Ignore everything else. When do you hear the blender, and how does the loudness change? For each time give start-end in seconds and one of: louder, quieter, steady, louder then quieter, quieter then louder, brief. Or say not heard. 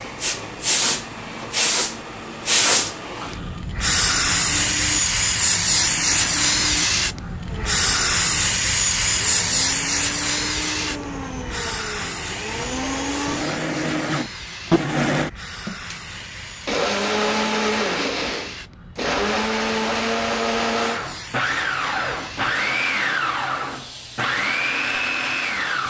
0.1-25.8 louder.